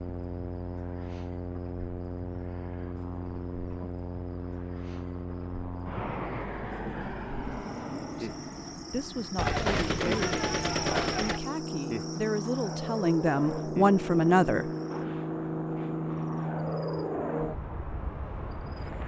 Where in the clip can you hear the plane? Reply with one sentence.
You can hear the plane from 0.0 to 19.0 s.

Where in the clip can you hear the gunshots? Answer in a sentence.
You can hear the gunshots from 9.3 to 11.4 s.